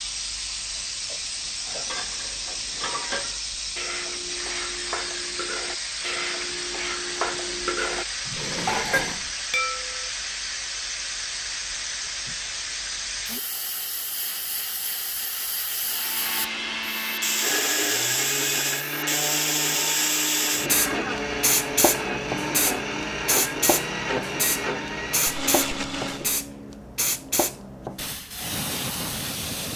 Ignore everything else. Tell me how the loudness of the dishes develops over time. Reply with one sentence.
The volume of the dishes goes up.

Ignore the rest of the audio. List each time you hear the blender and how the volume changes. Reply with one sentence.
The blender can be heard from 15.8 to 26.4 s, at a steady volume.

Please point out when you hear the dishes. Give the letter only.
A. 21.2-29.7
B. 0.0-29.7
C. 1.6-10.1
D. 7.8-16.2
C.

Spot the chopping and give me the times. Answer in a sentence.
You can't hear the chopping here.